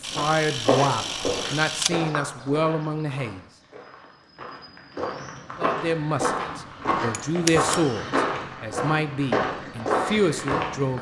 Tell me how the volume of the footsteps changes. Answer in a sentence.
The volume of the footsteps goes down, then up.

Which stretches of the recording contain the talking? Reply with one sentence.
You can hear the talking from 0.0 to 3.4 s and from 5.5 to 10.9 s.